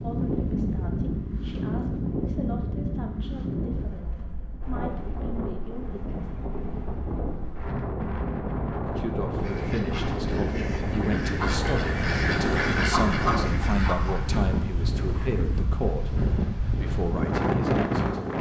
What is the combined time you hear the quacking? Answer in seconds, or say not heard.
6 s.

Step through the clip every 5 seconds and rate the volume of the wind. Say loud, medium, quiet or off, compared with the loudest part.
loud, medium, loud, loud.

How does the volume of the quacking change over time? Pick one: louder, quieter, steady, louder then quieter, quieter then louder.
louder then quieter.